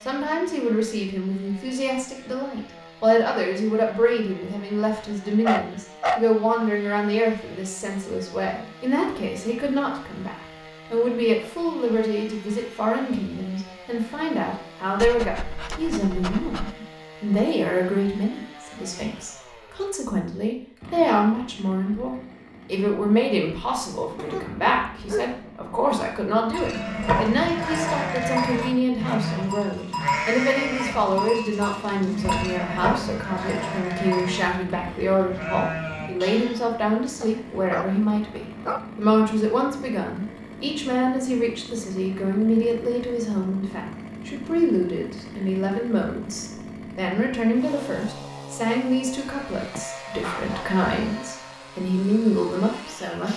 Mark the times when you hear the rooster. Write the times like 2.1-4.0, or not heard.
not heard.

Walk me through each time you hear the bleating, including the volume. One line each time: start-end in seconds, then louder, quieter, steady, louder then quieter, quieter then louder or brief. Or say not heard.
26.5-36.6 quieter.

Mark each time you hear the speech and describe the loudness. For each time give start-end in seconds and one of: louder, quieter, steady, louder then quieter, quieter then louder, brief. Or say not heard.
0.0-53.3 steady.